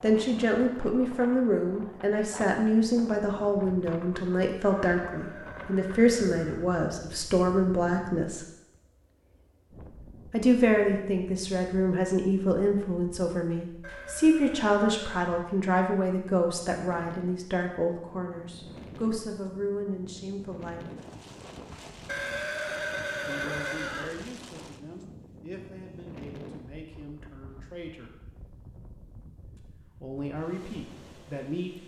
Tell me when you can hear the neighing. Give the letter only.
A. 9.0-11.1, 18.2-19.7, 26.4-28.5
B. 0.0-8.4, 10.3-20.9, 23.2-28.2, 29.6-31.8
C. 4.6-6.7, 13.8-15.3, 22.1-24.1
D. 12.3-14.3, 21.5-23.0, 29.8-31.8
C.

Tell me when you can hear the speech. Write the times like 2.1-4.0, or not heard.
0.0-8.4, 10.3-20.9, 23.2-28.2, 29.6-31.8.